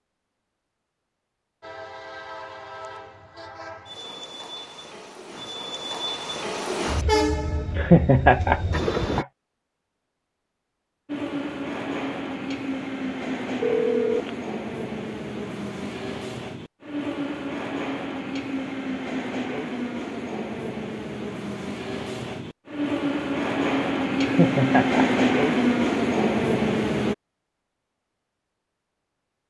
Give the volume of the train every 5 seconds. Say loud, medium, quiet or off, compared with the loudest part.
quiet, medium, medium, medium, medium, loud.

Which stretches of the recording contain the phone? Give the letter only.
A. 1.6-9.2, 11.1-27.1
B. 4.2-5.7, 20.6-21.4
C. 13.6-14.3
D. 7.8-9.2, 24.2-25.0
C.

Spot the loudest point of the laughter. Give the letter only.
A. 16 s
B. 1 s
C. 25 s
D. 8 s
D.